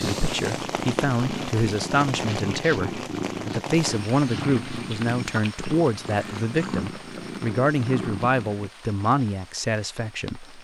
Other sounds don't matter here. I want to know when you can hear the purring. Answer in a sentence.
The purring can be heard from 0.0 to 8.7 s.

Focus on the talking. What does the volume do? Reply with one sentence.
The volume of the talking stays about the same.